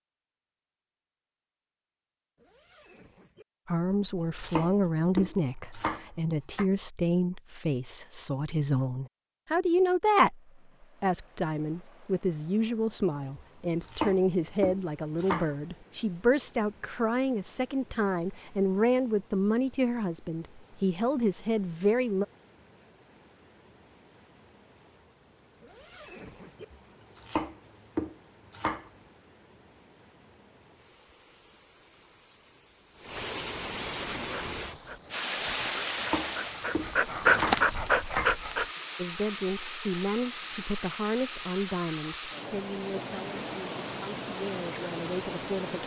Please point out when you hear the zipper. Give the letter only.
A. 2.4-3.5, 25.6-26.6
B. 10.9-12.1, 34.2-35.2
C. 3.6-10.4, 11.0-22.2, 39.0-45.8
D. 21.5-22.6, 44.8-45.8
A.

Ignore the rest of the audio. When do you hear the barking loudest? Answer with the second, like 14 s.
37 s.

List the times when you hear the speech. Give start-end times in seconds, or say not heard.
3.6-10.4, 11.0-22.2, 39.0-45.8.